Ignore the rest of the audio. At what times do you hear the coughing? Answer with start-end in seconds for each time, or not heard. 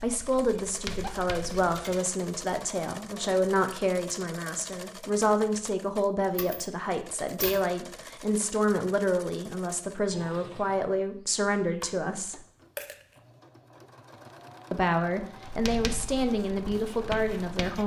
not heard.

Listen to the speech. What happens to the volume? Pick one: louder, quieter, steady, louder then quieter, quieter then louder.
steady.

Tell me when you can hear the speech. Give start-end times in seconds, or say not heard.
0.0-12.4, 14.7-17.8.